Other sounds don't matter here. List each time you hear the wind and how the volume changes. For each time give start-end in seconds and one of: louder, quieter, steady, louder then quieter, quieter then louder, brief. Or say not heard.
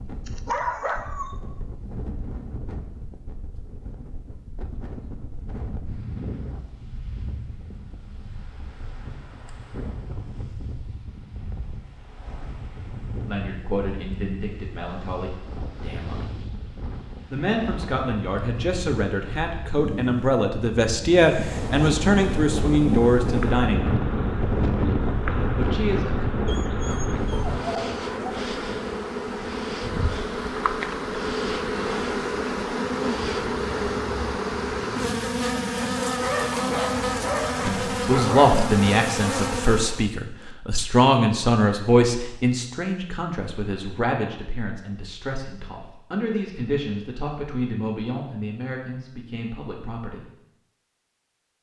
0.0-27.6 louder.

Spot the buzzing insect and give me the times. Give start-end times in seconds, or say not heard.
21.4-40.0.